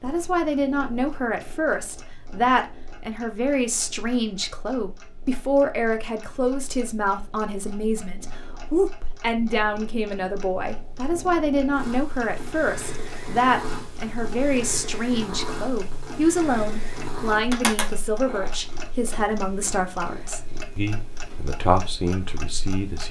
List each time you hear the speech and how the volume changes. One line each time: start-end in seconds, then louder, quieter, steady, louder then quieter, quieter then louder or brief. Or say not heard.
0.0-23.0 steady.